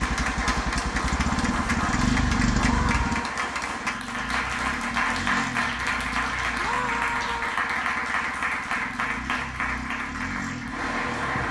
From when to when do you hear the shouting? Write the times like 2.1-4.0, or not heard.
2.6-3.3, 6.5-7.6.